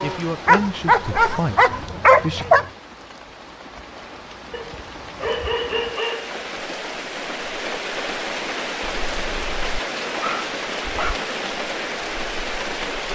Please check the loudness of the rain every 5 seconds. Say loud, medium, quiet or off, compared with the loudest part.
medium, loud, loud.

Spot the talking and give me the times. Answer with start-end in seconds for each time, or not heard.
0.0-2.5.